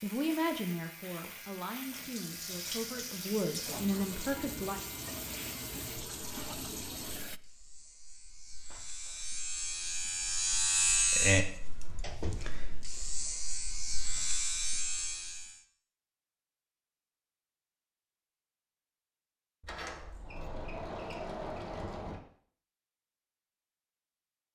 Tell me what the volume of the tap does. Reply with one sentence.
The volume of the tap goes up.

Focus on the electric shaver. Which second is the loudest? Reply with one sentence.
The loudest moment of the electric shaver is at 11 seconds.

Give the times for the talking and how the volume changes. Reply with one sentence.
The talking can be heard from 0.0 to 4.8 s, getting quieter then louder.